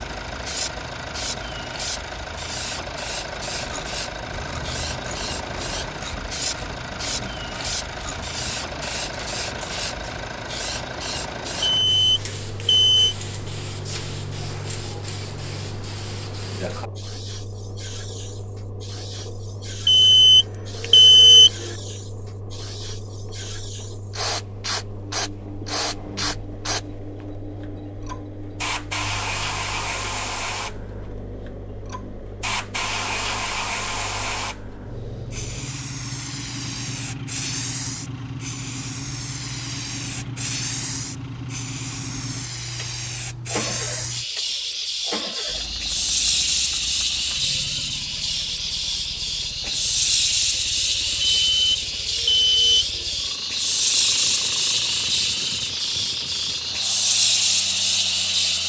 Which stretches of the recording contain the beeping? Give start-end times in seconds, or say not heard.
11.6-13.2, 19.9-21.7, 51.4-53.0.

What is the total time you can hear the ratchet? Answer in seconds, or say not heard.
7 s.